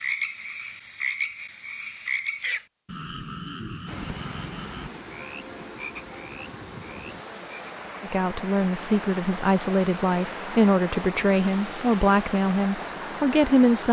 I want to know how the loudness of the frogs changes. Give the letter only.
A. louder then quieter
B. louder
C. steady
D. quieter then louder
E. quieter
E.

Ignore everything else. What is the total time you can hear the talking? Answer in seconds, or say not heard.
6 s.